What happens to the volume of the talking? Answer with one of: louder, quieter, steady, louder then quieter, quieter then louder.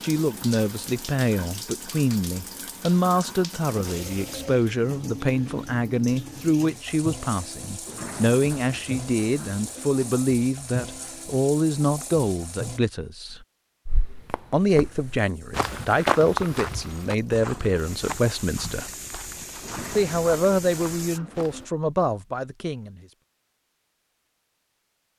steady.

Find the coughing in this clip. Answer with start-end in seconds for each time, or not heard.
not heard.